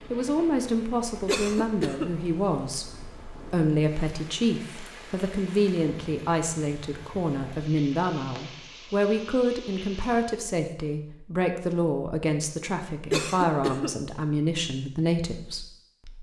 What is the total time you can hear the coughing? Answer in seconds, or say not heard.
2 s.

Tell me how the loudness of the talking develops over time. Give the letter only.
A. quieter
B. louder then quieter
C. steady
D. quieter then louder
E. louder
C.